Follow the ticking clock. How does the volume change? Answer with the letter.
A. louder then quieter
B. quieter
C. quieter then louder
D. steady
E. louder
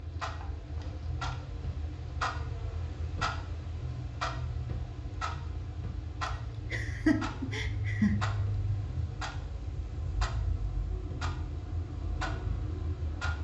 D.